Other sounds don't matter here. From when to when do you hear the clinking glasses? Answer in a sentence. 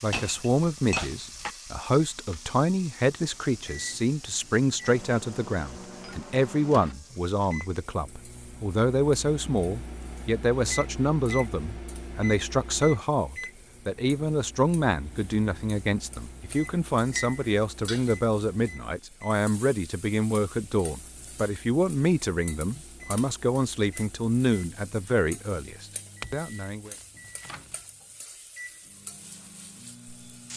You can hear the clinking glasses from 0.1 to 1.6 s, from 17.1 to 18.1 s and from 26.2 to 27.8 s.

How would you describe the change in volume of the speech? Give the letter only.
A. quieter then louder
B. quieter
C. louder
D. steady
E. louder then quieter
D.